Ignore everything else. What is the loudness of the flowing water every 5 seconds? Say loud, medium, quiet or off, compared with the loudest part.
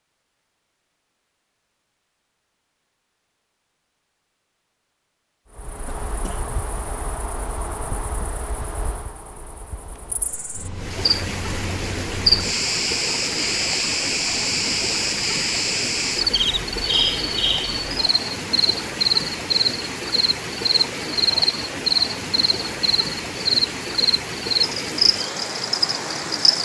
off, off, loud, loud, loud, loud.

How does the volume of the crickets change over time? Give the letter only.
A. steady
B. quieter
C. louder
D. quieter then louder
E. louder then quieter
C.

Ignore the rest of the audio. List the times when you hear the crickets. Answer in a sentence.
You can hear the crickets from 5.5 to 26.6 s.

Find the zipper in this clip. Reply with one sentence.
You can't hear the zipper here.